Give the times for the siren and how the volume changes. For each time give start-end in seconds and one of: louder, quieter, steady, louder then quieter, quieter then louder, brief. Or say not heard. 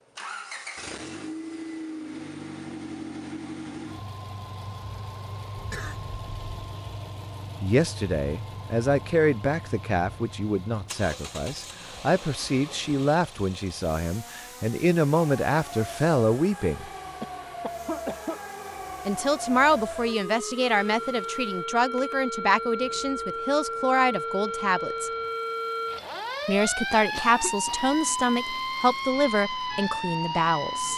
15.2-30.9 louder.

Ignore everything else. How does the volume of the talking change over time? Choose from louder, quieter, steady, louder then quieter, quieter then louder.
steady.